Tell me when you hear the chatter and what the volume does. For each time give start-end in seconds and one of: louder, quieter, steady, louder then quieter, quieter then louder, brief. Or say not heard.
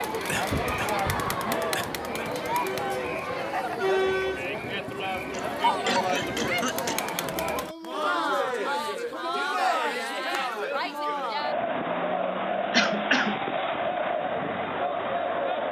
0.0-15.6 steady.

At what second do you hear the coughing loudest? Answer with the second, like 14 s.
13 s.